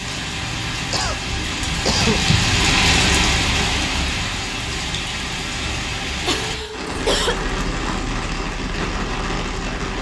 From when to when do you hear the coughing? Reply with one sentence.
The coughing can be heard from 0.9 to 2.2 s and from 6.2 to 7.5 s.